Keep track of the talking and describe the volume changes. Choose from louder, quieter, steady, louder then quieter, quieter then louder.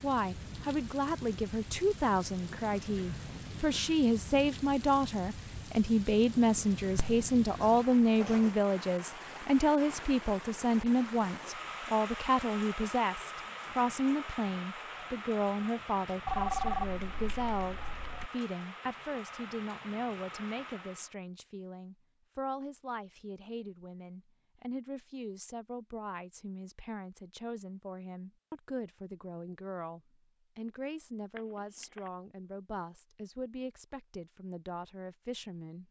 quieter.